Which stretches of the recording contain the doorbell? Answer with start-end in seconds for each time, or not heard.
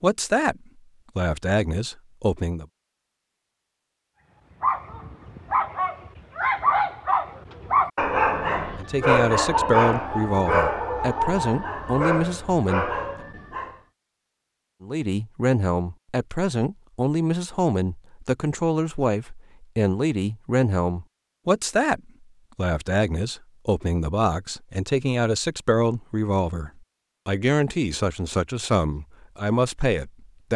not heard.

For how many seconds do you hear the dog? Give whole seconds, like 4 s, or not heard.
9 s.